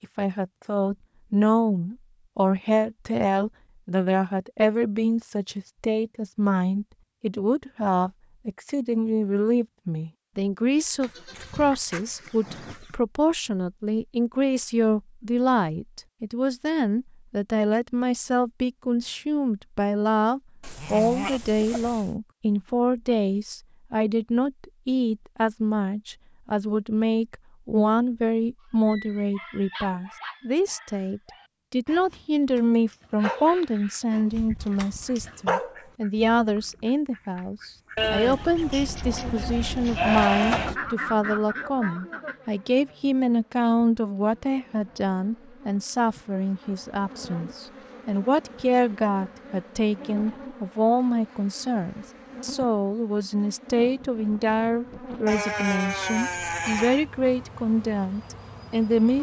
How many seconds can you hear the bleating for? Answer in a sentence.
The bleating can be heard for 8 seconds in total.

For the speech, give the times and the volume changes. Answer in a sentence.
You can hear the speech from 0.0 to 59.1 s, at a steady volume.